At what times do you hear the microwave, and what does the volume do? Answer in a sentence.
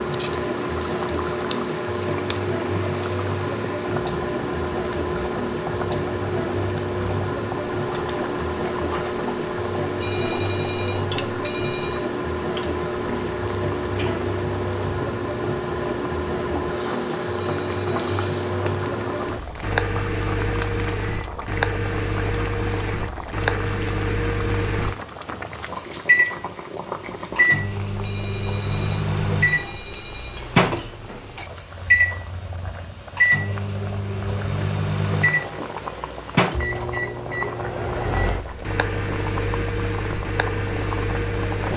The microwave can be heard from 0.0 to 41.7 s, at a steady volume.